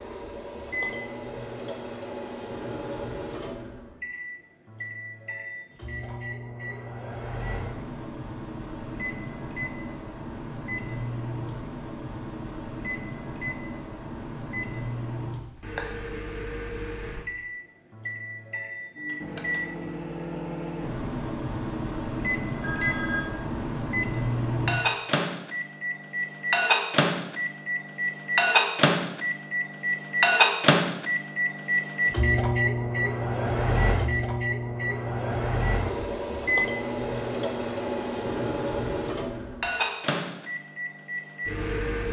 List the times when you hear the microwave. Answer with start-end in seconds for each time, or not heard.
0.0-42.0.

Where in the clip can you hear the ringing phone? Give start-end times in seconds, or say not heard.
22.6-23.4.